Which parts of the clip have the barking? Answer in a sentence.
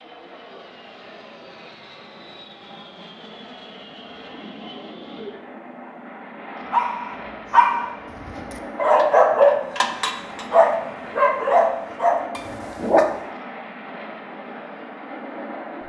The barking can be heard from 6.7 to 13.1 s.